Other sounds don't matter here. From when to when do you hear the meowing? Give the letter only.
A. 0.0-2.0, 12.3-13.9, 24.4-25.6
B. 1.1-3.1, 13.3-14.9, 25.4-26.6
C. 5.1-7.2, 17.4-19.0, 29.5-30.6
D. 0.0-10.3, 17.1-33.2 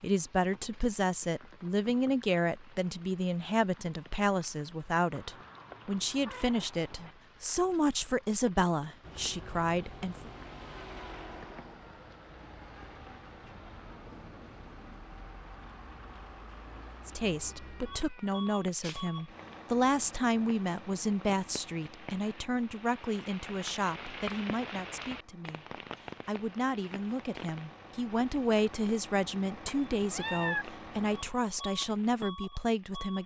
C.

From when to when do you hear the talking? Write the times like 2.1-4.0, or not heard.
0.0-10.3, 17.1-33.2.